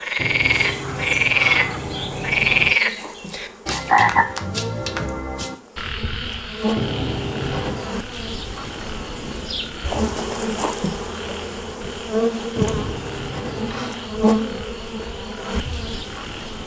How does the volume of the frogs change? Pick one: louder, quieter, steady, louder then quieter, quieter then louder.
quieter.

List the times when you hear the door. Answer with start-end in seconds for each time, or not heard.
0.1-2.8, 6.8-7.9, 12.6-13.9.